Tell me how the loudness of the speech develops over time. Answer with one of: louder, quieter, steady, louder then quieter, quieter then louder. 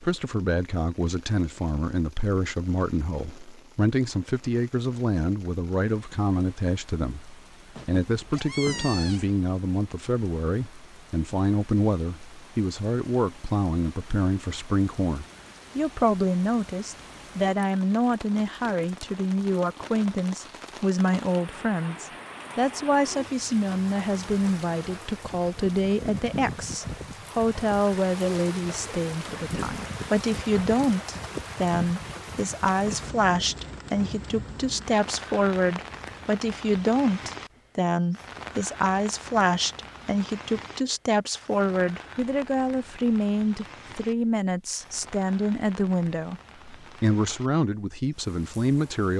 steady.